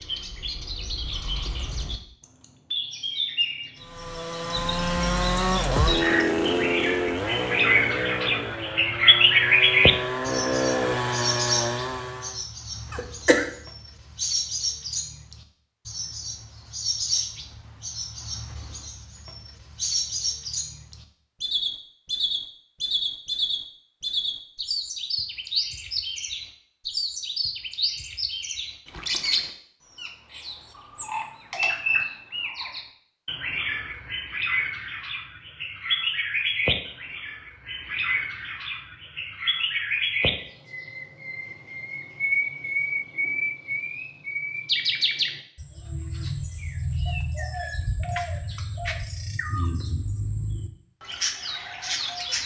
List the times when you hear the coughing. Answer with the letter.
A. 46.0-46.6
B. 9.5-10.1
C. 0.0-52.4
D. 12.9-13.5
D.